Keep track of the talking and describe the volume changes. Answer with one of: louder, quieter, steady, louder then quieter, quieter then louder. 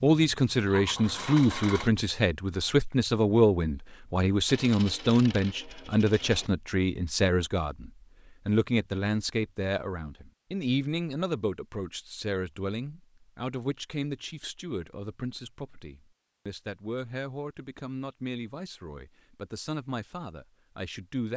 quieter.